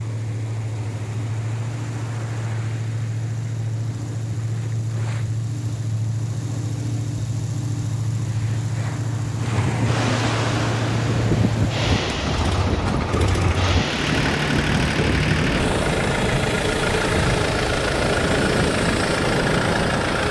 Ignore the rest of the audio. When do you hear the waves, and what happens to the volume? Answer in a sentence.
You can hear the waves from 0.0 to 20.2 s, getting louder.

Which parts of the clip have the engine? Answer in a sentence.
The engine can be heard from 0.0 to 20.2 s.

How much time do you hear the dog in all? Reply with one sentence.
The dog can't be heard in this clip.